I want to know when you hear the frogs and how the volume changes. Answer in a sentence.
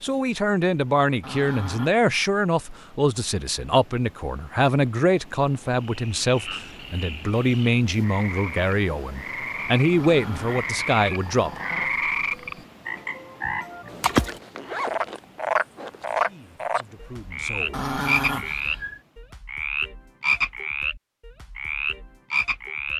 The frogs can be heard from 5.8 to 22.9 s, getting louder.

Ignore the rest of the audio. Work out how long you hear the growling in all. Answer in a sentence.
The growling can be heard for 4 seconds in total.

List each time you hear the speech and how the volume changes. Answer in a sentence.
You can hear the speech from 0.0 to 11.5 s, at a steady volume; and briefly from 16.2 to 17.9 s.